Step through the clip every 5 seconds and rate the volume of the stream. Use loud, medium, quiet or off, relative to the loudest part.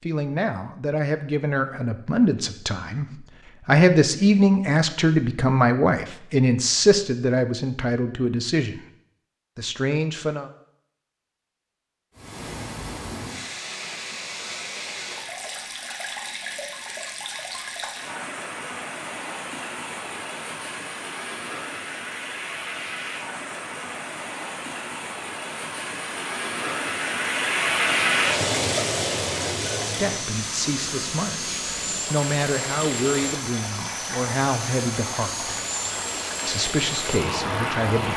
off, off, medium, medium, medium, loud, medium, medium.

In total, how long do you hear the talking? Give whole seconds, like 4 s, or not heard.
17 s.